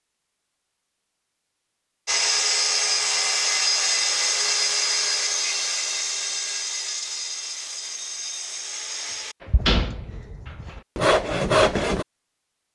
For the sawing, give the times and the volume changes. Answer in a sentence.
The sawing can be heard from 2.0 to 12.1 s, getting quieter then louder.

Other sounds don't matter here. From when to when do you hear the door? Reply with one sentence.
The door can be heard from 9.4 to 10.8 s.